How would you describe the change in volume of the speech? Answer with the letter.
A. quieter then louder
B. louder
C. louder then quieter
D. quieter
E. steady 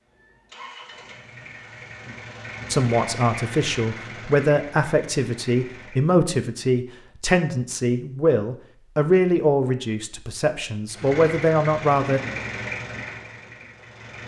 E.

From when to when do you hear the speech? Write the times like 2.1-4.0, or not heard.
2.7-12.2.